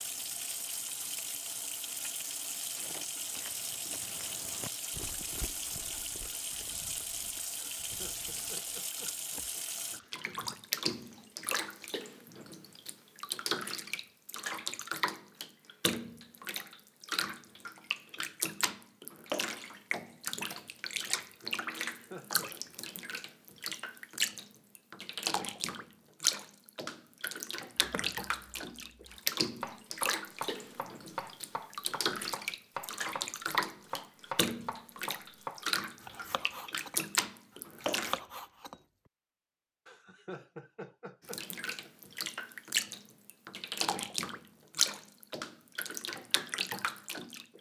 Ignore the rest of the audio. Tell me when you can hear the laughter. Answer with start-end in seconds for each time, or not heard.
7.8-9.7, 21.9-22.5, 39.9-41.9.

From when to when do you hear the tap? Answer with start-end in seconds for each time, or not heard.
0.0-38.2, 41.2-47.5.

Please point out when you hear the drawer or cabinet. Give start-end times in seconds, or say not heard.
not heard.